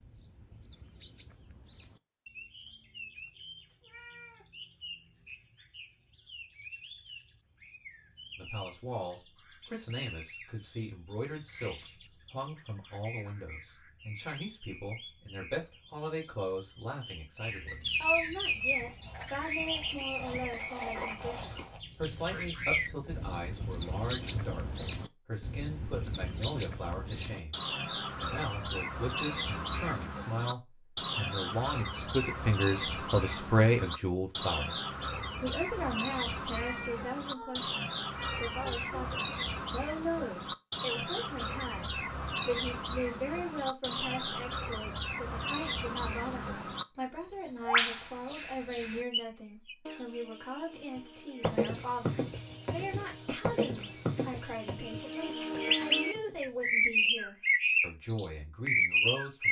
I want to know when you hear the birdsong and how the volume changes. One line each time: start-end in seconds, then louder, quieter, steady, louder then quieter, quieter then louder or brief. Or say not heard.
0.0-59.4 louder.